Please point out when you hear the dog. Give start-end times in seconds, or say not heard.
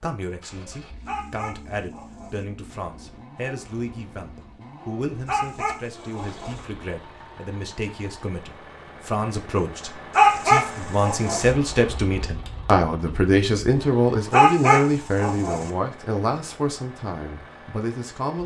1.1-2.4, 5.2-6.7, 10.2-11.5, 14.3-15.7.